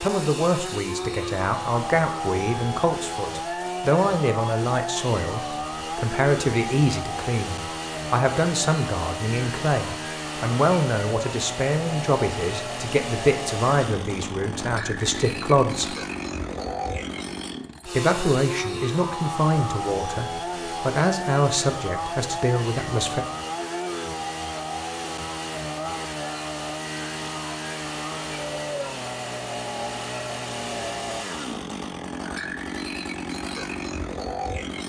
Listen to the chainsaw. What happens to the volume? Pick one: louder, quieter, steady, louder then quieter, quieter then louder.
steady.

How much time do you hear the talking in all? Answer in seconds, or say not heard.
21 s.